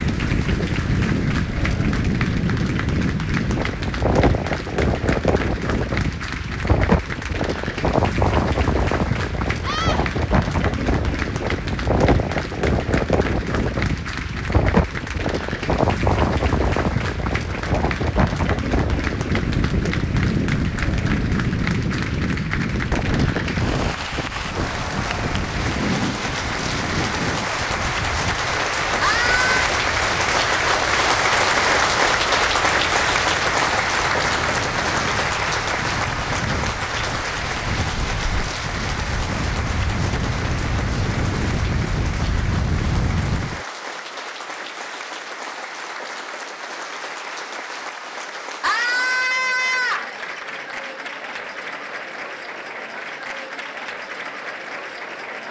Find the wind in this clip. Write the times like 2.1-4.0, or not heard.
0.0-43.6.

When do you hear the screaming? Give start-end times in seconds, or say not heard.
9.6-10.1, 29.0-29.7, 48.6-50.1.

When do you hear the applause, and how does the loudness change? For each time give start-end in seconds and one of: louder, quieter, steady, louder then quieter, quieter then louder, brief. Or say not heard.
0.0-55.4 louder then quieter.